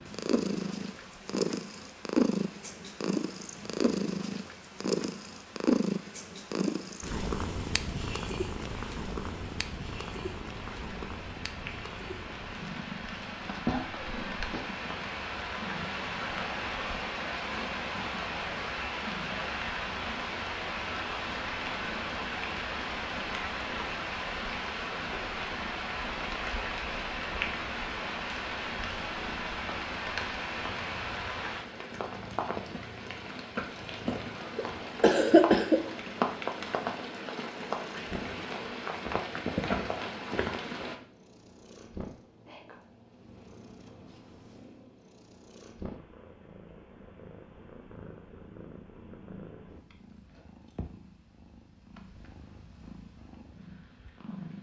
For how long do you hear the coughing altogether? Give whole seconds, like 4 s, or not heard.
3 s.